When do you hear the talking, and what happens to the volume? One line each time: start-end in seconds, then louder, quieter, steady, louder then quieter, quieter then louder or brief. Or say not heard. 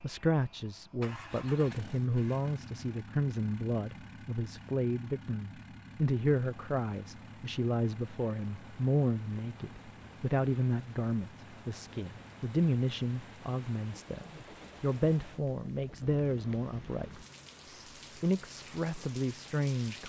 0.0-20.0 steady.